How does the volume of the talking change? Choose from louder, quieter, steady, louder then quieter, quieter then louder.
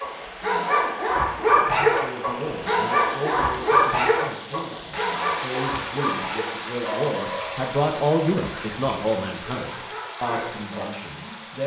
louder then quieter.